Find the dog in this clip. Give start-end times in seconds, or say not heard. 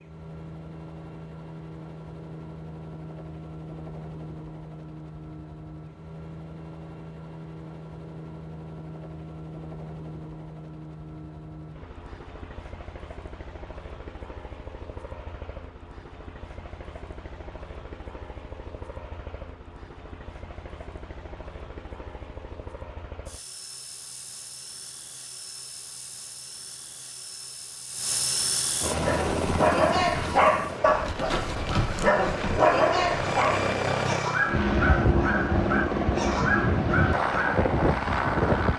28.9-37.6.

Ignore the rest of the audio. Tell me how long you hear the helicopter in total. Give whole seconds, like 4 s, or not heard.
39 s.